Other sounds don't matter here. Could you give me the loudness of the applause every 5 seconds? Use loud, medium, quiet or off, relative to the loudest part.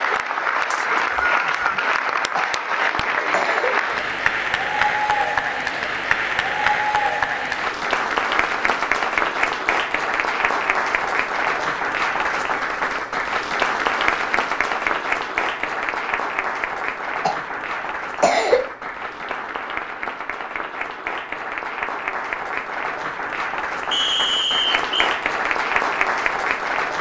loud, loud, loud, medium, medium, loud.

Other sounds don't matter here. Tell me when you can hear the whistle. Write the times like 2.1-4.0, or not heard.
0.7-1.9, 23.9-25.1.